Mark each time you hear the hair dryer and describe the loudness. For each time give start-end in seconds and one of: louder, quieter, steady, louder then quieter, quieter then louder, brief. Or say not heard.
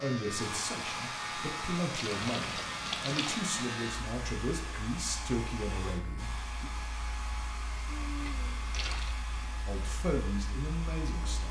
0.2-11.4 quieter.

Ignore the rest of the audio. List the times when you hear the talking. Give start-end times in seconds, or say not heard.
0.0-6.7, 9.7-11.4.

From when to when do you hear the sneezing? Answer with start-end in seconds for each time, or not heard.
7.8-8.8.